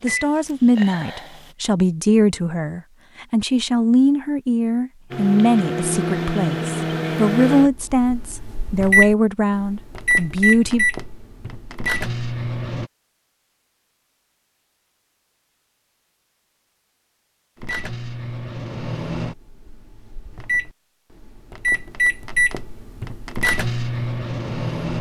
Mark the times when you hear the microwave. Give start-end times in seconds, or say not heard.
0.0-1.4, 5.1-12.9, 17.6-24.9.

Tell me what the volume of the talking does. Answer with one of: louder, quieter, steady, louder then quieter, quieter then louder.
steady.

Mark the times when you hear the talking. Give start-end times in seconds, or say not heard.
0.0-10.8.